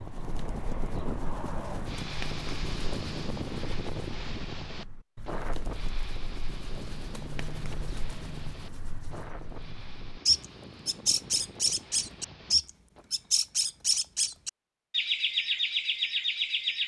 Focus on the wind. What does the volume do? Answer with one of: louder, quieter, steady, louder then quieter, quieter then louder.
quieter.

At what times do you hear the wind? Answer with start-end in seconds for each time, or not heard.
0.0-13.1.